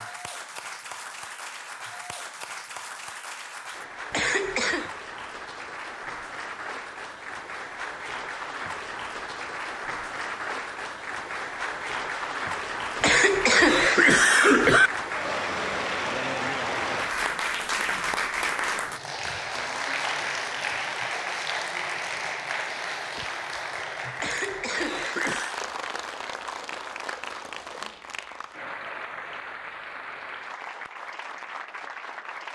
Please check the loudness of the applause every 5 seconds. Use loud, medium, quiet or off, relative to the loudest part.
medium, medium, loud, loud, loud, medium, medium.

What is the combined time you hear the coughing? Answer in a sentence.
You can hear the coughing for 4 seconds altogether.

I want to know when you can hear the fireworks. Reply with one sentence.
The fireworks can't be heard in this clip.